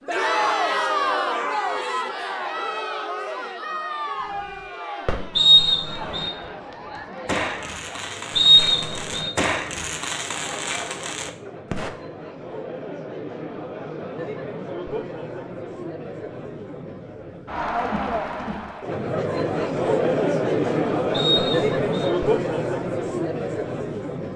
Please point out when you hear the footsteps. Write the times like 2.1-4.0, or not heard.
not heard.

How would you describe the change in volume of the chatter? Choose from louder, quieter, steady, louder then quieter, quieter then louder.
quieter then louder.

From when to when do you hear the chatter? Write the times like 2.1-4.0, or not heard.
0.1-24.3.